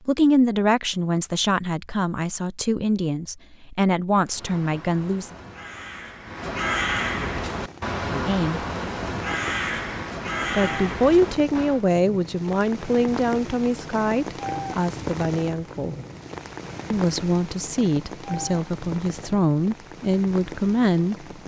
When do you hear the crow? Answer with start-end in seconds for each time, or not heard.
4.2-11.8.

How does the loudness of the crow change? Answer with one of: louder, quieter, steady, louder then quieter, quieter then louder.
louder.